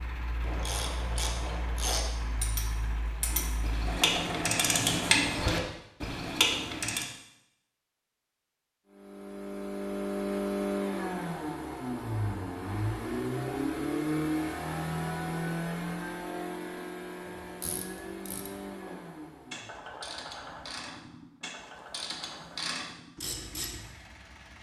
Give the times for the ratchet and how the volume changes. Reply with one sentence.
The ratchet can be heard from 0.4 to 7.0 s, getting louder; and from 17.2 to 23.9 s, getting louder.